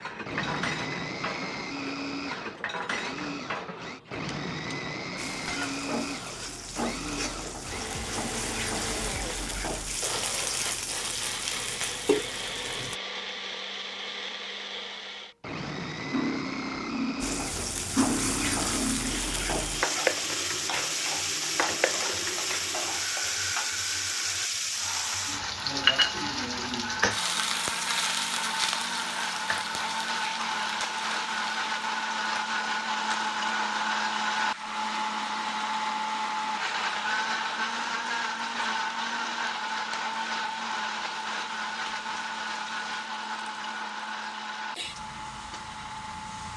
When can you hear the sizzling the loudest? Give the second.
26 s.